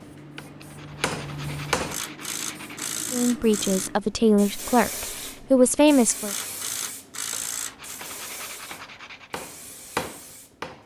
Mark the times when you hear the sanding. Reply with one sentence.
The sanding can be heard from 0.6 to 3.0 s and from 7.5 to 9.3 s.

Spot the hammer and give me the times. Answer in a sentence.
You can hear the hammer from 0.0 to 1.9 s and from 7.2 to 10.8 s.